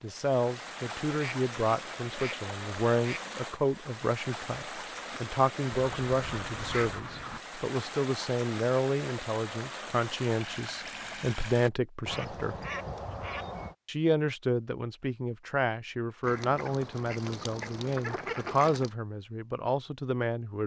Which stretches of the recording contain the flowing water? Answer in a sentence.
You can hear the flowing water from 0.0 to 11.7 s.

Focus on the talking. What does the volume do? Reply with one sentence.
The loudness of the talking stays about the same.